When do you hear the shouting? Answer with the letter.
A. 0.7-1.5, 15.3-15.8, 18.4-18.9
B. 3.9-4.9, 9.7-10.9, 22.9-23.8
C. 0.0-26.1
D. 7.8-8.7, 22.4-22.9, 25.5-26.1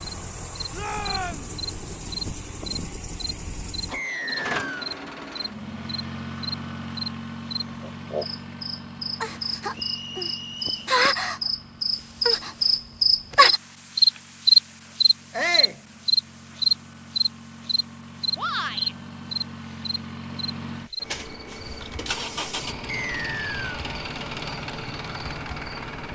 A.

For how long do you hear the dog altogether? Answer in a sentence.
The dog can't be heard in this clip.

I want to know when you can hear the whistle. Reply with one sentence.
The whistle can be heard from 3.9 to 4.9 s, from 9.7 to 10.9 s and from 22.9 to 23.8 s.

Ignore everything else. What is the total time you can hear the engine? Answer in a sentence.
The engine can be heard for 26 seconds in total.